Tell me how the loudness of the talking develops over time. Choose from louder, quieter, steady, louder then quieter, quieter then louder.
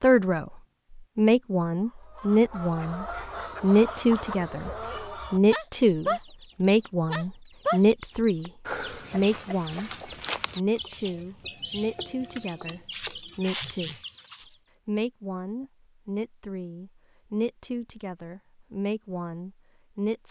quieter.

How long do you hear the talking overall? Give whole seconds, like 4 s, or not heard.
18 s.